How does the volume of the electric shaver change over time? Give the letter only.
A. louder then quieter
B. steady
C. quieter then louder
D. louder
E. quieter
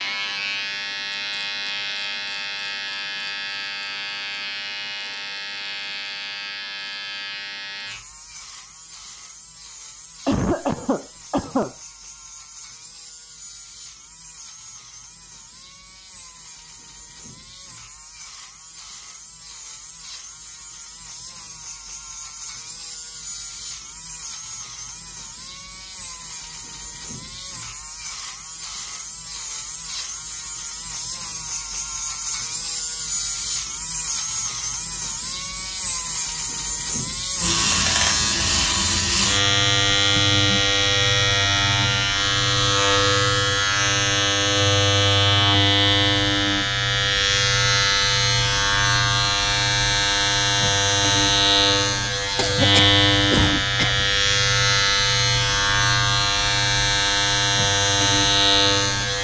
C.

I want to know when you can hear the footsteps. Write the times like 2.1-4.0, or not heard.
not heard.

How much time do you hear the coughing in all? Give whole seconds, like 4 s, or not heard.
3 s.